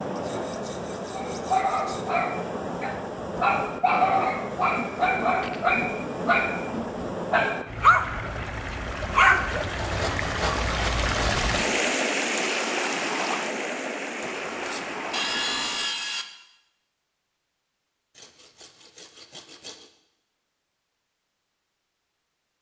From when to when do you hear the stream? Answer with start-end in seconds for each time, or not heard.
0.0-15.9.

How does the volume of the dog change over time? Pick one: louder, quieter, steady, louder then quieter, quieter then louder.
louder.